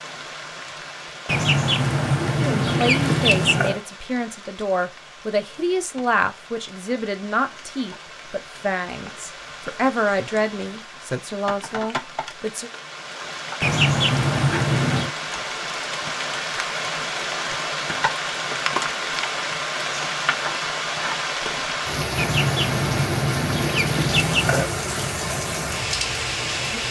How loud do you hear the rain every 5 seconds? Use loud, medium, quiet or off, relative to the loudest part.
quiet, quiet, medium, loud, loud, loud.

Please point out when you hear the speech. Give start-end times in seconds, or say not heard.
2.4-12.7.